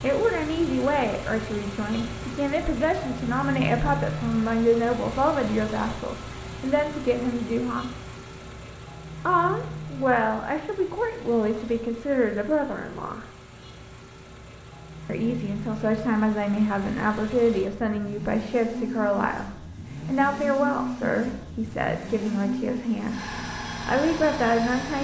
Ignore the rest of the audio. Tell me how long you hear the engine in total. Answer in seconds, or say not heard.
25 s.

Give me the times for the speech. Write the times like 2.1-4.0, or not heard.
0.0-7.9, 9.2-13.2, 15.1-23.2, 23.9-24.9.